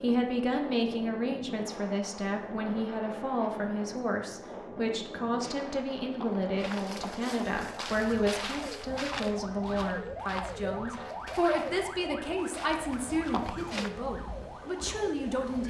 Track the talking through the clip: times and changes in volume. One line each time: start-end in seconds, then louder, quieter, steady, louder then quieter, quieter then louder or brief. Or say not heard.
0.0-15.6 steady.